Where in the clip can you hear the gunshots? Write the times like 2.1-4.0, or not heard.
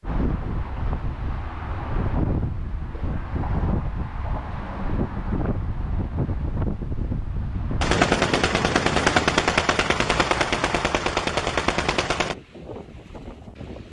7.8-12.3.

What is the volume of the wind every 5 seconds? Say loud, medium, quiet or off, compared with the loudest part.
loud, loud, medium.